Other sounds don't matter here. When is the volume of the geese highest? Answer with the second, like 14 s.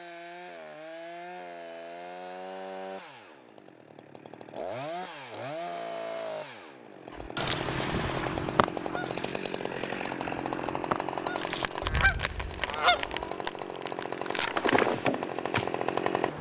13 s.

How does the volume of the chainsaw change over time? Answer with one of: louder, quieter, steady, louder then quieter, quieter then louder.
louder.